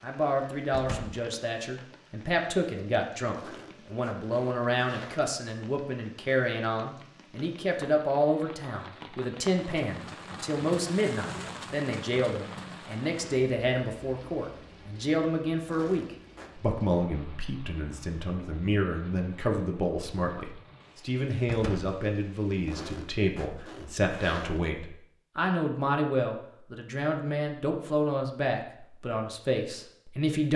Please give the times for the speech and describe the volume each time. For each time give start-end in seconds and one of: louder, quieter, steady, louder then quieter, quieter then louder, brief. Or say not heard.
0.0-30.5 steady.